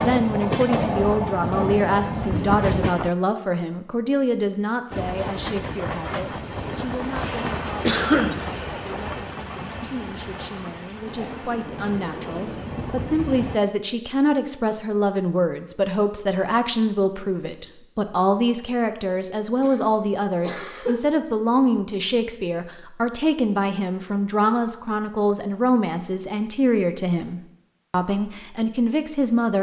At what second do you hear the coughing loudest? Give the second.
8 s.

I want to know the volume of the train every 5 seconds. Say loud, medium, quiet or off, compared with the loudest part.
loud, medium, medium, off, off, off.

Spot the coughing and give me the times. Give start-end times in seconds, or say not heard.
7.8-8.4, 19.6-21.0.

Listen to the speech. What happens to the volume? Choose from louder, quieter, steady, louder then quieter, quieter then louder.
quieter then louder.